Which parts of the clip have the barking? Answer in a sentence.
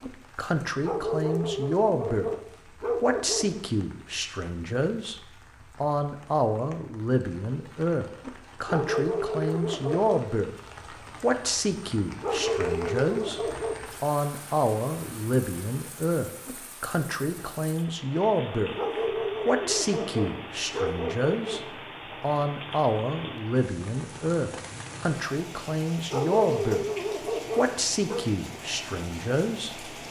You can hear the barking from 0.8 to 3.6 s, from 8.7 to 10.2 s, from 12.2 to 13.8 s, from 18.8 to 21.6 s and from 26.1 to 28.2 s.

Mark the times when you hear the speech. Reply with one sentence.
You can hear the speech from 0.0 to 2.3 s, from 3.0 to 5.2 s, from 5.8 to 10.6 s, from 11.2 to 18.8 s, from 19.4 to 26.9 s and from 27.6 to 29.9 s.